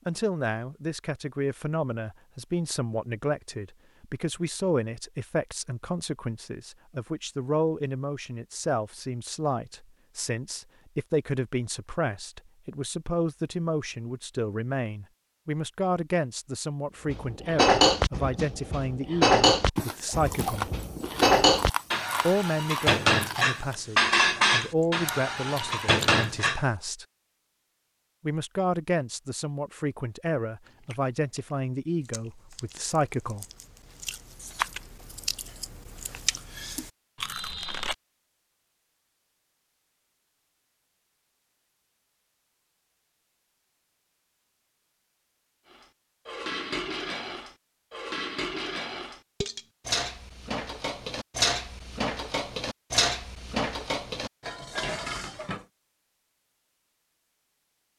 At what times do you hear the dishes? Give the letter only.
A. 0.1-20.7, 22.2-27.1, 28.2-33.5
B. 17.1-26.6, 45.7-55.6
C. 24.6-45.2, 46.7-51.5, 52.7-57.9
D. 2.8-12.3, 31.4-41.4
B.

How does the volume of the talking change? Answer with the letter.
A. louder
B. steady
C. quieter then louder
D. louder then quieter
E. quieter
B.